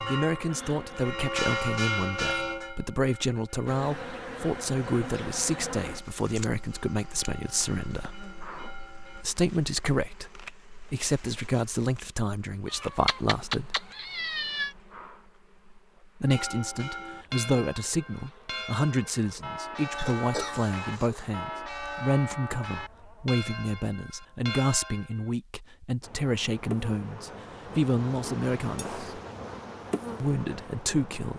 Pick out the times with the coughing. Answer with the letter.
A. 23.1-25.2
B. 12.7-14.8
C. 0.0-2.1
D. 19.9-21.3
D.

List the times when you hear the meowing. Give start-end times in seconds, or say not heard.
12.7-14.8.